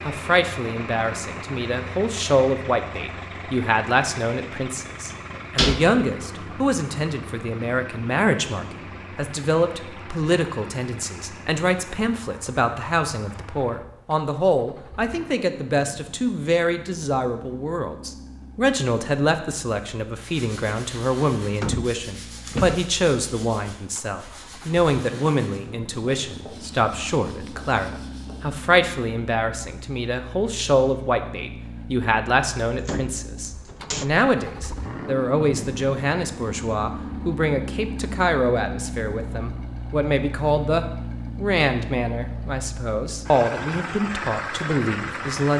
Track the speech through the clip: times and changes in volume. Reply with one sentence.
You can hear the speech from 0.1 to 45.5 s, at a steady volume.